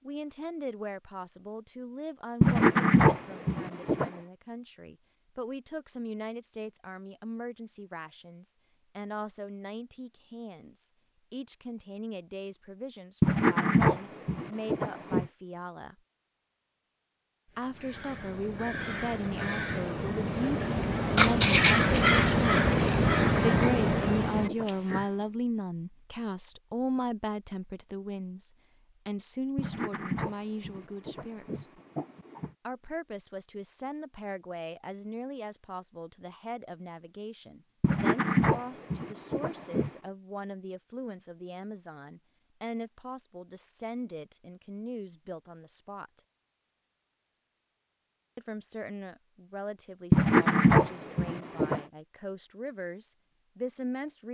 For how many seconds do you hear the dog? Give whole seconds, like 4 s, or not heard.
13 s.